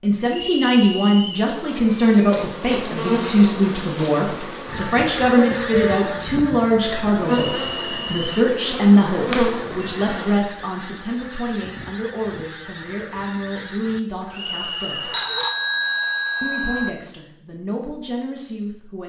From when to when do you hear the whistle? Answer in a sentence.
You can hear the whistle from 0.2 to 1.5 s, from 7.2 to 8.3 s and from 14.3 to 15.2 s.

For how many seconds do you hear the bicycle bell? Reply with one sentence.
You can hear the bicycle bell for 3 seconds altogether.